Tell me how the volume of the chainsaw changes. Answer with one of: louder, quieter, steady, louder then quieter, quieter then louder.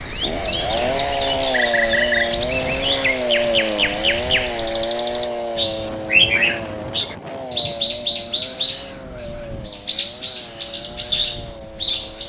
quieter.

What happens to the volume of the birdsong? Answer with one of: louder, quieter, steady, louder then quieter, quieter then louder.
steady.